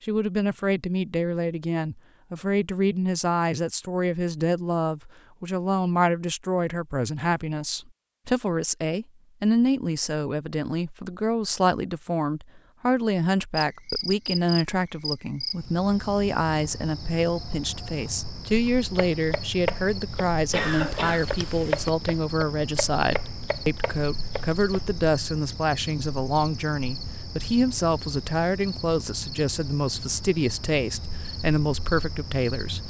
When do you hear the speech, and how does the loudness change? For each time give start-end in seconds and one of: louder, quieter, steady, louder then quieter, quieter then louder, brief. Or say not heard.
0.0-32.8 steady.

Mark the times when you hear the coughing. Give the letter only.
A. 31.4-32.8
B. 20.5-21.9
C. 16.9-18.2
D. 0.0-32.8
B.